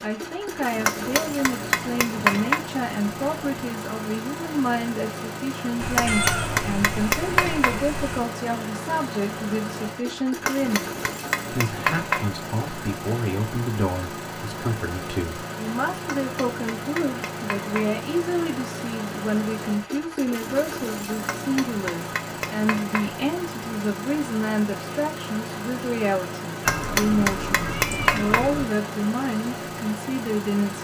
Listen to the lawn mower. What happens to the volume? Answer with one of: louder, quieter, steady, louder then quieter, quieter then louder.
steady.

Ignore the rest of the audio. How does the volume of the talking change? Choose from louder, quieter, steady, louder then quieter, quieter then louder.
steady.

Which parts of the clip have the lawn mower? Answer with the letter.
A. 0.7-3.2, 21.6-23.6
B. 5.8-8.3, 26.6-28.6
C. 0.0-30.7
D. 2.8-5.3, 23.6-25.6
C.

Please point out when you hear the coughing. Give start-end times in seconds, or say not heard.
not heard.